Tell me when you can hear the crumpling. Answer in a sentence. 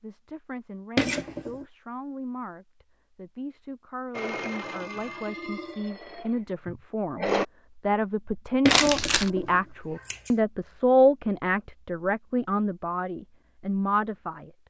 The crumpling can be heard from 8.7 to 9.3 s.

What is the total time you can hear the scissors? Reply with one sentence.
The scissors can be heard for 2 seconds in total.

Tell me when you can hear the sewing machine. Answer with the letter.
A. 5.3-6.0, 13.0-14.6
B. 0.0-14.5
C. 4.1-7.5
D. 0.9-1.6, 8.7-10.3
C.